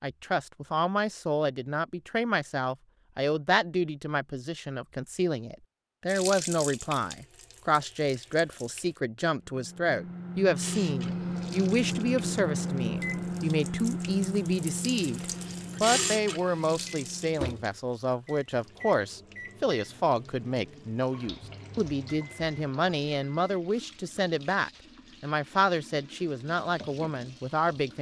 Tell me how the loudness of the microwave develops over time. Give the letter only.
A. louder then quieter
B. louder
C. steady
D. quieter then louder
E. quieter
E.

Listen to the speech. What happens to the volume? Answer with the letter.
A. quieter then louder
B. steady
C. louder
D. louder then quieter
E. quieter
B.